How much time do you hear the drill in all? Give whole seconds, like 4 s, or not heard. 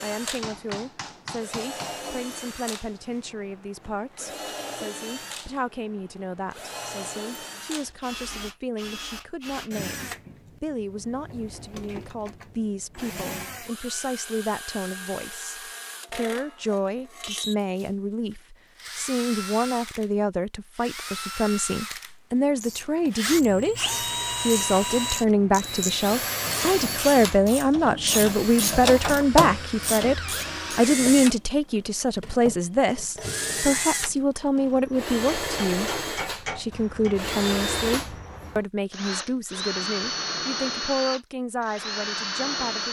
43 s.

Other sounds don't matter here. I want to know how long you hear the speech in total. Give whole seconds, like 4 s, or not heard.
43 s.